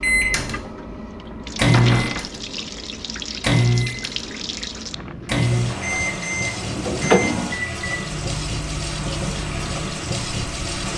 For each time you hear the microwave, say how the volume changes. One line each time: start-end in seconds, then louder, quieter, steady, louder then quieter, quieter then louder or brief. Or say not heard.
0.0-10.9 quieter.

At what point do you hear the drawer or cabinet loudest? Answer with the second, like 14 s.
7 s.